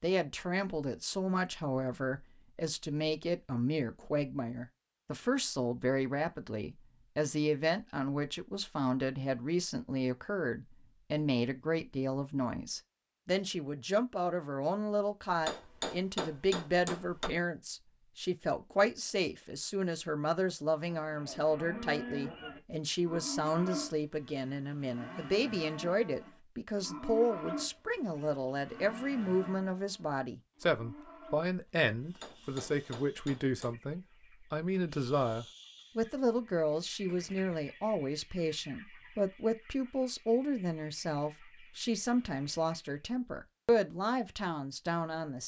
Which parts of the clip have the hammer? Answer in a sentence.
You can hear the hammer from 15.2 to 17.3 s and from 32.0 to 33.8 s.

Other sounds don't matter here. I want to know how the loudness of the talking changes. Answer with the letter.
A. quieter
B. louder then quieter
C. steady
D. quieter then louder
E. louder
C.